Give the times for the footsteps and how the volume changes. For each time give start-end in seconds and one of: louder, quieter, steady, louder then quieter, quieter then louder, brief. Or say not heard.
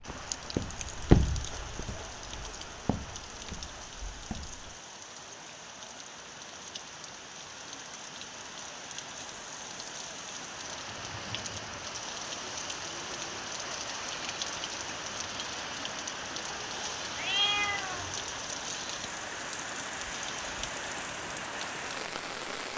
0.0-4.8 quieter then louder.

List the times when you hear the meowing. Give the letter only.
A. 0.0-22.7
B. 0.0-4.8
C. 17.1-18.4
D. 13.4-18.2
C.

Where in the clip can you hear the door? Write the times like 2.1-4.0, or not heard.
not heard.